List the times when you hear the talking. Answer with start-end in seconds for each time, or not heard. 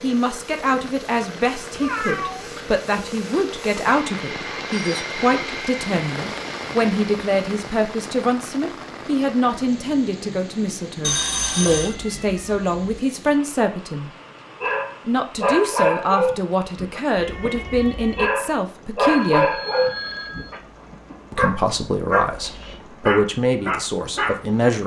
0.0-14.1, 15.1-19.6, 21.3-24.8.